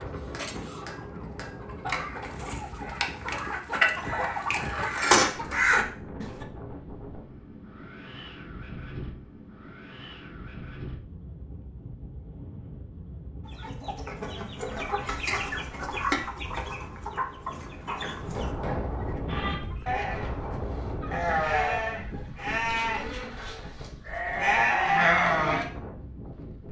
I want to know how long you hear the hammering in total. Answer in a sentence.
The hammering can be heard for 4 seconds in total.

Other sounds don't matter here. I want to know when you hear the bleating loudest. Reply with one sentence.
The loudest moment of the bleating is at 25 seconds.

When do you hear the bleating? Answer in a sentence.
You can hear the bleating from 19.2 to 25.6 s.